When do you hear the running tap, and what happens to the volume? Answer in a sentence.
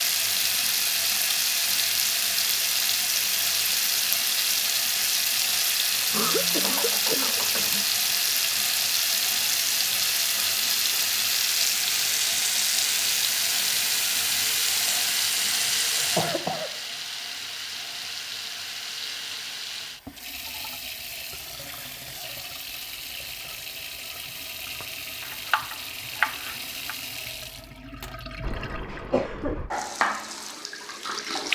The running tap can be heard from 0.0 to 31.5 s, getting quieter.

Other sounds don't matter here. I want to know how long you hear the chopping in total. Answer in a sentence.
You can hear the chopping for 2 seconds altogether.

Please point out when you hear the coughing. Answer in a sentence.
The coughing can be heard from 6.1 to 7.8 s, from 15.9 to 16.8 s and from 28.4 to 29.7 s.